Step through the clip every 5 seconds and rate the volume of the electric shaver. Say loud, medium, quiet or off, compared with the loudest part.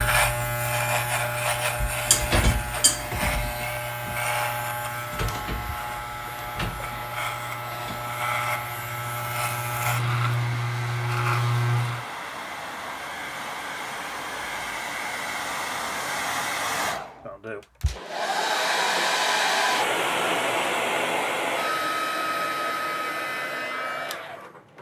loud, medium, loud, off, off.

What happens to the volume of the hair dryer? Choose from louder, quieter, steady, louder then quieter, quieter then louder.
louder.